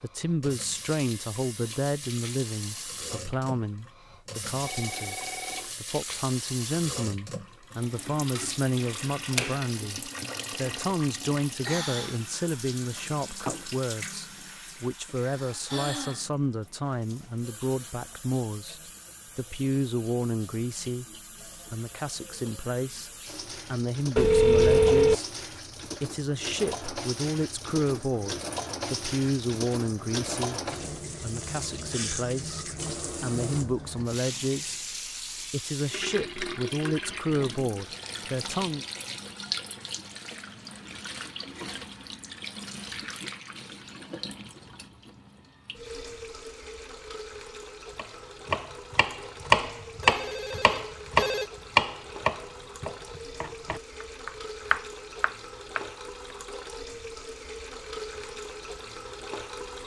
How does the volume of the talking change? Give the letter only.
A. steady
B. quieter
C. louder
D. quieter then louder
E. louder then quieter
A.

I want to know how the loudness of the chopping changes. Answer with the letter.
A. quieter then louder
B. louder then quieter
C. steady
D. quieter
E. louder
A.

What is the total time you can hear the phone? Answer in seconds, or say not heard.
4 s.